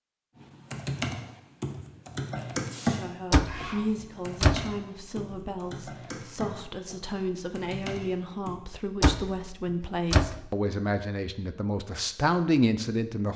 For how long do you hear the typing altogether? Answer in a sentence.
The typing can be heard for 8 seconds in total.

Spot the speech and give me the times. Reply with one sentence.
You can hear the speech from 2.9 to 13.3 s.